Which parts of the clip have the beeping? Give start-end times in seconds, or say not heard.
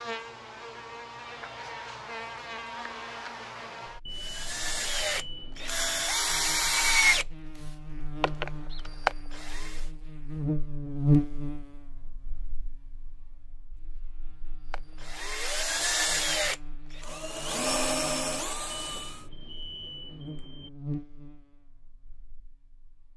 4.0-6.0, 18.7-20.7.